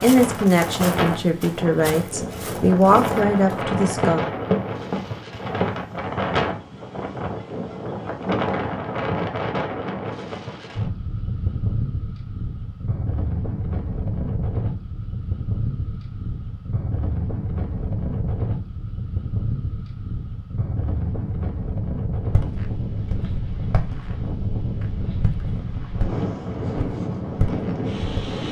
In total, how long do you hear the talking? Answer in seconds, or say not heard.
4 s.